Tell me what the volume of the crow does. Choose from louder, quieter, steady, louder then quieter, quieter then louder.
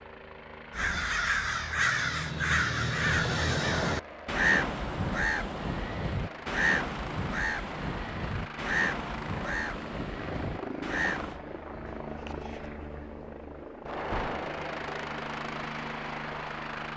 quieter.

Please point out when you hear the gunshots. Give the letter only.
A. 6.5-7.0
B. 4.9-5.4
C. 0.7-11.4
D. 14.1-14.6
D.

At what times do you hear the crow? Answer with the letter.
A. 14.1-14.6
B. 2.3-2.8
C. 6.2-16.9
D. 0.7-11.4
D.